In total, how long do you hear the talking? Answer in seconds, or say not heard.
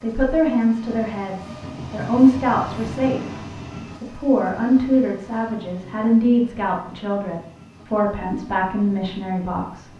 10 s.